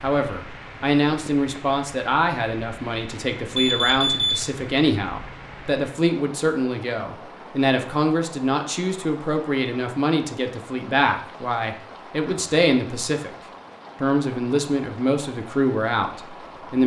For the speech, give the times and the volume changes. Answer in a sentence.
The speech can be heard from 0.0 to 13.3 s, at a steady volume; and briefly from 14.0 to 16.8 s.